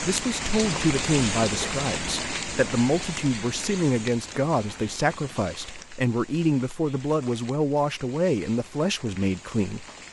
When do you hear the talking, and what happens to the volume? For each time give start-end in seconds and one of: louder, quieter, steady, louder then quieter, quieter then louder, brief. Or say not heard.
0.0-9.8 steady.